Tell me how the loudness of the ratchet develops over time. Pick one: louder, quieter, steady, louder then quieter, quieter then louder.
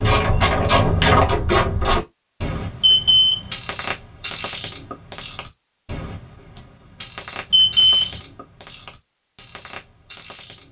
quieter.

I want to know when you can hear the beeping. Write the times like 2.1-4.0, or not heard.
2.8-3.5, 7.5-8.2.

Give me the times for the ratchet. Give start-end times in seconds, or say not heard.
0.0-10.6.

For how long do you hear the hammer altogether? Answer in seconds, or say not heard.
not heard.